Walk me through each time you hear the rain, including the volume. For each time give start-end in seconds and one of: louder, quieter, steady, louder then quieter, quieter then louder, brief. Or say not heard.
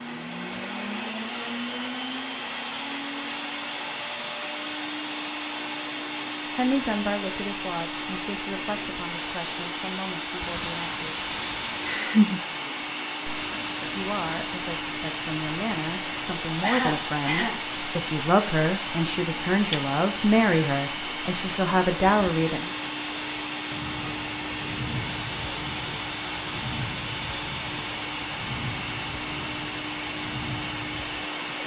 10.4-31.6 quieter.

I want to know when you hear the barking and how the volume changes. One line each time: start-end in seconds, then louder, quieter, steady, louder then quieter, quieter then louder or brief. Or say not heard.
not heard.